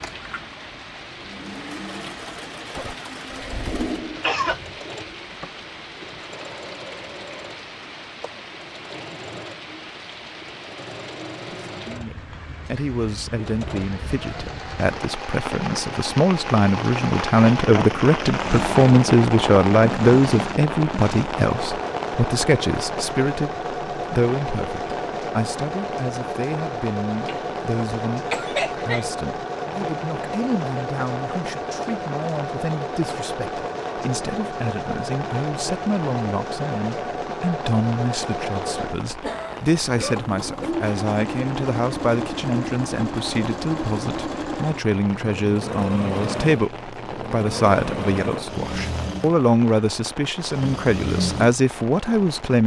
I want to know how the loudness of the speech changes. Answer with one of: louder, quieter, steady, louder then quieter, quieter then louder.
quieter then louder.